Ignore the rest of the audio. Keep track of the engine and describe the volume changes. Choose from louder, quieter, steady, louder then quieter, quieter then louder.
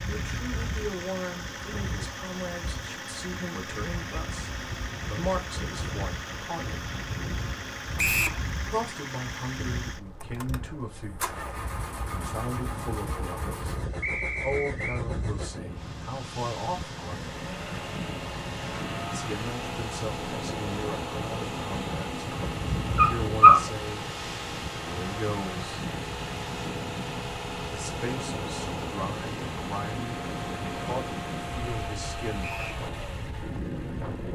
steady.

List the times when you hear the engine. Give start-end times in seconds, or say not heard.
0.0-34.3.